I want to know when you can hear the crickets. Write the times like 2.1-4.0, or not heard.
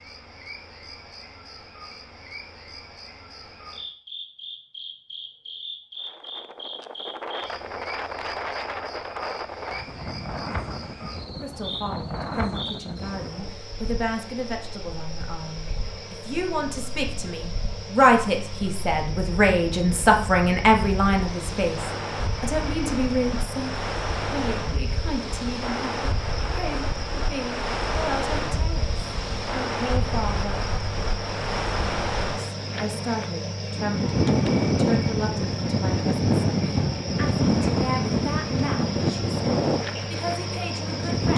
0.0-41.3.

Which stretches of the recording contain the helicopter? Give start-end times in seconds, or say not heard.
not heard.